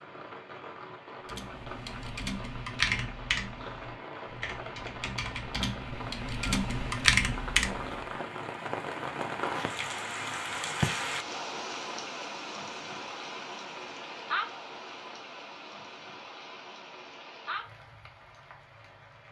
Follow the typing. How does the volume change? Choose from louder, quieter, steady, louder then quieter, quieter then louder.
quieter then louder.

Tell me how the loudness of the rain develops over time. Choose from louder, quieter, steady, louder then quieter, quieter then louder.
louder then quieter.